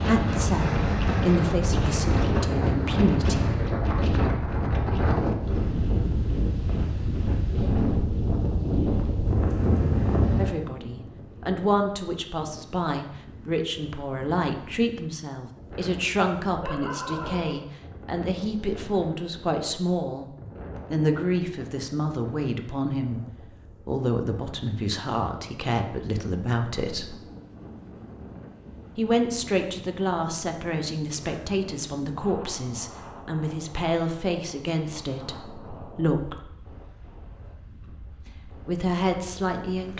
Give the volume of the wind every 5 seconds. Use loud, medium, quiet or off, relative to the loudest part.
loud, loud, medium, quiet, quiet, quiet, quiet, quiet.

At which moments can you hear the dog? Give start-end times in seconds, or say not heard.
16.6-17.6.